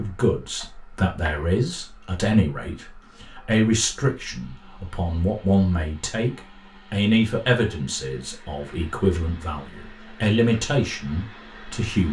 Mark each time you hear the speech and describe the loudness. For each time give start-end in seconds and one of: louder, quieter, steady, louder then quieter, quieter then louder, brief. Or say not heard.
0.0-12.0 steady.